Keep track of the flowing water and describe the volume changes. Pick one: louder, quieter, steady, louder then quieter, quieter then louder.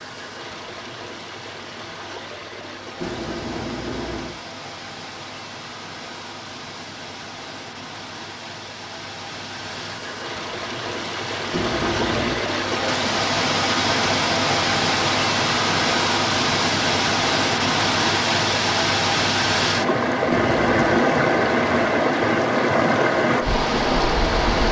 louder.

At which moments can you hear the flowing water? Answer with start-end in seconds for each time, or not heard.
0.0-24.6.